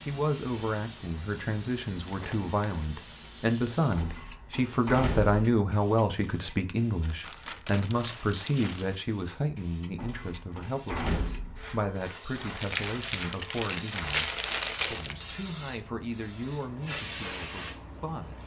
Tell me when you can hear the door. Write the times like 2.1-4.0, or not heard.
4.0-5.3, 9.9-11.8.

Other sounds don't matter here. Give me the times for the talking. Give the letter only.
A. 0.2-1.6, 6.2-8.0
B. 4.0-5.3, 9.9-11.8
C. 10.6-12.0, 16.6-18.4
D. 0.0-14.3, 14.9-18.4
D.